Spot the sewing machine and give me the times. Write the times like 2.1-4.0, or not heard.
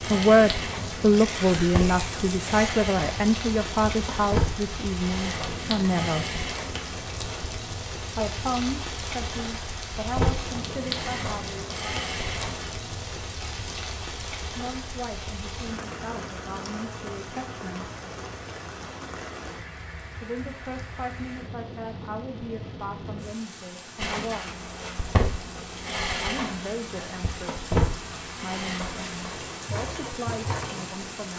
0.0-7.5, 10.1-12.7, 24.0-31.3.